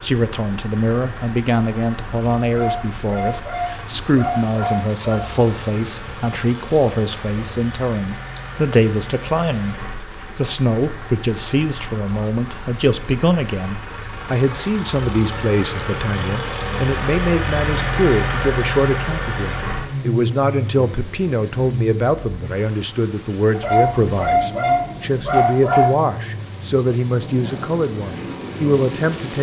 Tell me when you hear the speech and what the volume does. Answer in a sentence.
You can hear the speech from 0.0 to 29.3 s, at a steady volume.